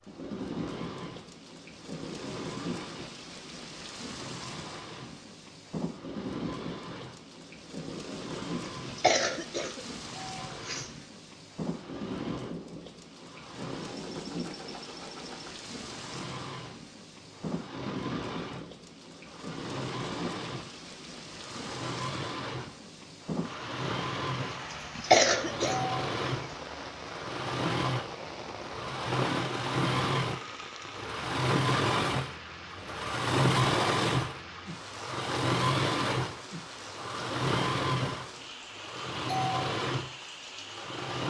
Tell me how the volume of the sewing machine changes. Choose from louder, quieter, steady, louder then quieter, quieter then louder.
louder.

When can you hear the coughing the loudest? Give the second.
25 s.